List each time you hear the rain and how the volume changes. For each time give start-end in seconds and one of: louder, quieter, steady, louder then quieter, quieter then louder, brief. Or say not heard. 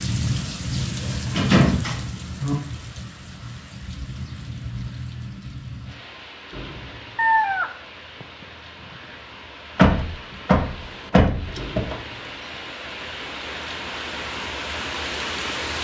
0.0-15.8 quieter then louder.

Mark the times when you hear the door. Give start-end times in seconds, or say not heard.
1.2-2.5, 9.8-11.9.